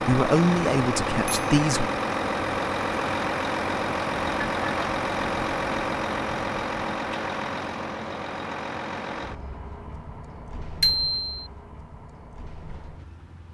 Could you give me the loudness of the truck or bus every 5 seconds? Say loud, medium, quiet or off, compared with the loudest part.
loud, loud, quiet.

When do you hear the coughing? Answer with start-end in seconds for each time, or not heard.
not heard.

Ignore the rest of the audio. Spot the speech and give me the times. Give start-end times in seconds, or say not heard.
0.0-1.9.